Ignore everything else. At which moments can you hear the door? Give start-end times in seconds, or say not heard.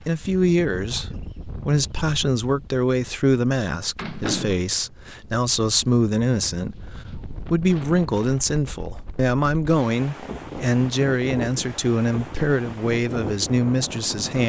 4.0-4.7.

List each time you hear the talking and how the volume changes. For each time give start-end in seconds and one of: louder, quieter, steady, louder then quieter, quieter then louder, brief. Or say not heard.
0.0-14.4 steady.